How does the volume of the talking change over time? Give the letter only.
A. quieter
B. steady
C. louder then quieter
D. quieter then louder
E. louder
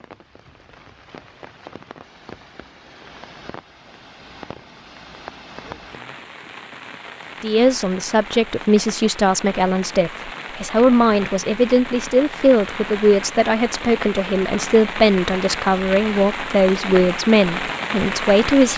B.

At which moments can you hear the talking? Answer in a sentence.
The talking can be heard from 7.4 to 18.7 s.